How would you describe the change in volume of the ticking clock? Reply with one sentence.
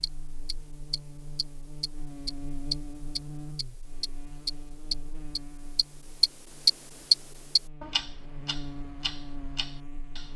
The volume of the ticking clock goes up, then down.